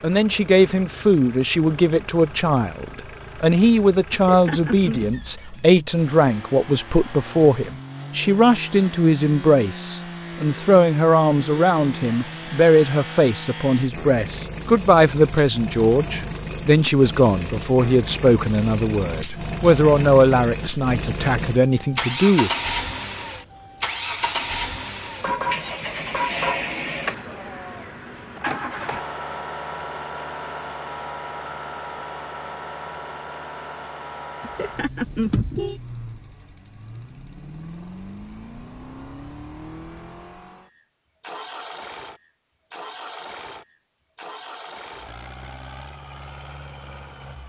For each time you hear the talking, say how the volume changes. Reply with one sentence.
You can hear the talking from 0.0 to 22.5 s, at a steady volume.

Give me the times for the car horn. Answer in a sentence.
You can hear the car horn from 4.1 to 5.1 s, from 25.2 to 26.8 s and from 34.5 to 35.8 s.